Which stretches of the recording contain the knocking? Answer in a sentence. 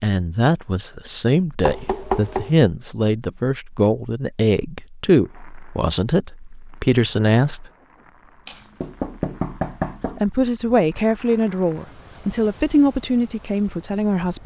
You can hear the knocking from 1.6 to 2.5 s and from 8.4 to 10.2 s.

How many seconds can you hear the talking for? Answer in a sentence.
You can hear the talking for 12 seconds altogether.